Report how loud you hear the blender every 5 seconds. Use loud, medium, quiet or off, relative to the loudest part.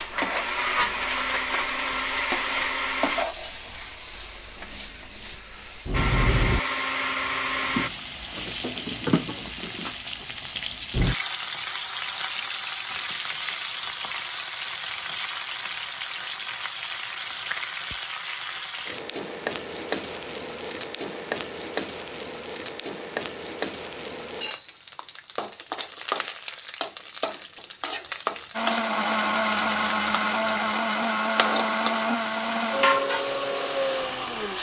loud, loud, off, off, off, loud, loud.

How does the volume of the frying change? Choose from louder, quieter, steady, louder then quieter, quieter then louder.
steady.